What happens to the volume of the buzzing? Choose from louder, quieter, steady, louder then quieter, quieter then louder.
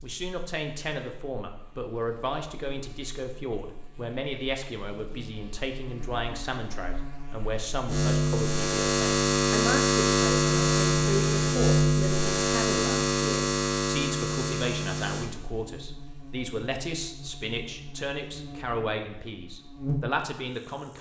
louder then quieter.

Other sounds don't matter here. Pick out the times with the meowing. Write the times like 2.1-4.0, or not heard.
not heard.